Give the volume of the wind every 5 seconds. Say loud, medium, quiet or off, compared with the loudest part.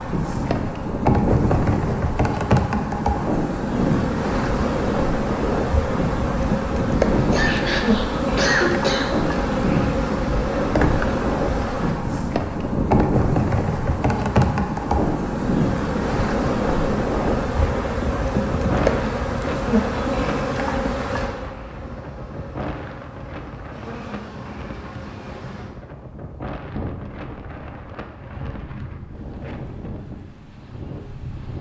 loud, loud, loud, loud, medium, quiet, quiet.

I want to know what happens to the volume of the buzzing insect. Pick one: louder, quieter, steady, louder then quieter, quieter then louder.
quieter.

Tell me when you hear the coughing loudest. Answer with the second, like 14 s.
9 s.